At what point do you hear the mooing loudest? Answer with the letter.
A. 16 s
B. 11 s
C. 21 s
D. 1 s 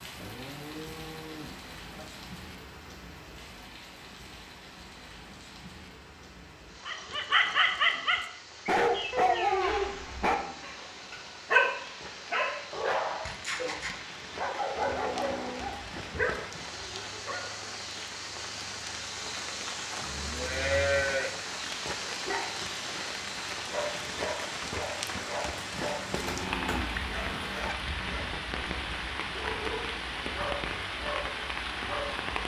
C.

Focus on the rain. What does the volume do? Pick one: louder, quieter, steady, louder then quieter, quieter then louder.
louder.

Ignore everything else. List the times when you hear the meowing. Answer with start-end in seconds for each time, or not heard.
9.1-9.8, 25.8-27.8.